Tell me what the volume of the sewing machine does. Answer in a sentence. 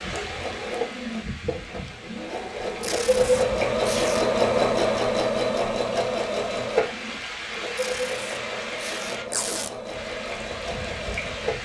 The loudness of the sewing machine goes up, then down.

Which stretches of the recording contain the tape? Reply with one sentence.
You can hear the tape from 2.8 to 4.2 s and from 7.8 to 9.7 s.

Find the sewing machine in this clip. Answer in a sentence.
The sewing machine can be heard from 0.0 to 11.6 s.